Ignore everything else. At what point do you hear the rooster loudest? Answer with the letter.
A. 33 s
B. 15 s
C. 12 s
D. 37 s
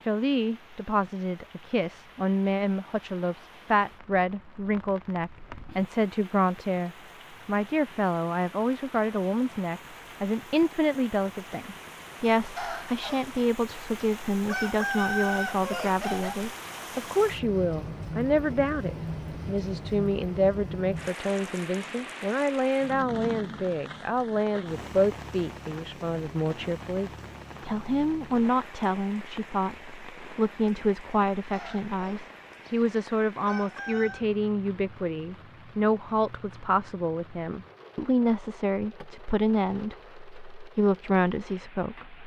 B.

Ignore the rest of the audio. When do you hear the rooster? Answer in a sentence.
You can hear the rooster from 12.6 to 16.4 s and from 31.5 to 34.2 s.